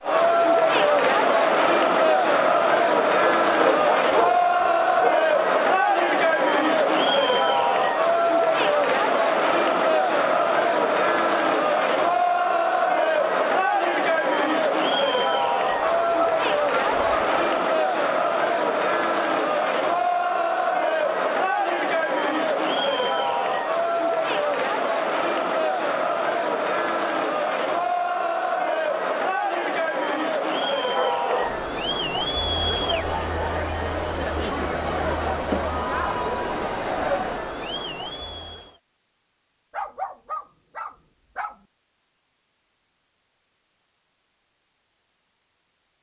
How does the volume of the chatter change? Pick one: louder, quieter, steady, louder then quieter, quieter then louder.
quieter.